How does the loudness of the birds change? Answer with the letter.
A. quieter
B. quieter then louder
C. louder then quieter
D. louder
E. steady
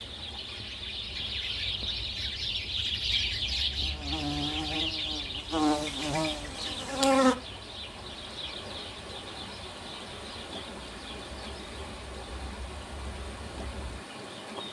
A.